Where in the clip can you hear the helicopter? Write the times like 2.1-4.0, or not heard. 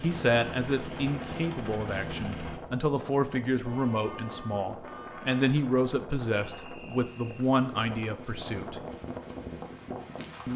0.0-2.6.